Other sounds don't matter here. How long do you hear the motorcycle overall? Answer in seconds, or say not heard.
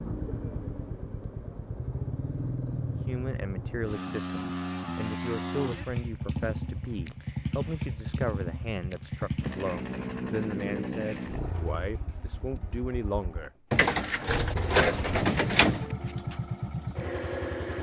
18 s.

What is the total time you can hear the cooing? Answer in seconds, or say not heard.
2 s.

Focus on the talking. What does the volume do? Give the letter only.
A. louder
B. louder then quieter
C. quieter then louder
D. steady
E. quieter
D.